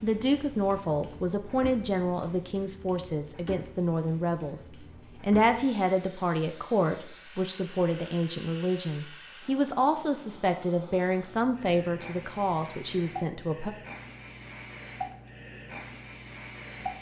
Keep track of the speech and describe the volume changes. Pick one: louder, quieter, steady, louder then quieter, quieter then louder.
steady.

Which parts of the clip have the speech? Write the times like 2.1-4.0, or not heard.
0.0-13.7.